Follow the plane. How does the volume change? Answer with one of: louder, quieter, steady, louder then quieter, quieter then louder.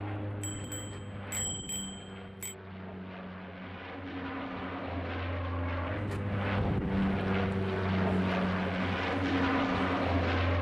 louder.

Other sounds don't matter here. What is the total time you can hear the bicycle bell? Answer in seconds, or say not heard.
2 s.